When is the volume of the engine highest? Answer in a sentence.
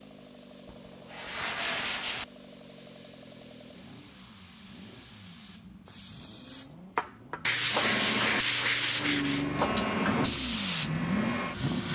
The loudest moment of the engine is at 11 seconds.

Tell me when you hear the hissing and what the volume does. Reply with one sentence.
The hissing can be heard from 0.0 to 11.8 s, getting louder.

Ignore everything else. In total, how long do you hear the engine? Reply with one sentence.
The engine can be heard for 12 seconds in total.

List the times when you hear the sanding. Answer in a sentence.
You can hear the sanding from 0.7 to 2.2 s and from 7.5 to 9.4 s.